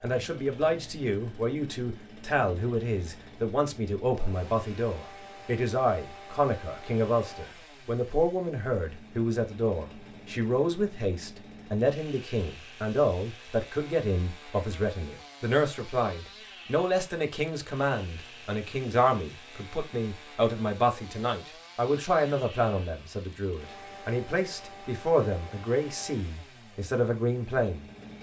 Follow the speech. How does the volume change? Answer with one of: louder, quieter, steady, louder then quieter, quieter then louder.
steady.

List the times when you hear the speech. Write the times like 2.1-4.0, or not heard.
0.0-27.9.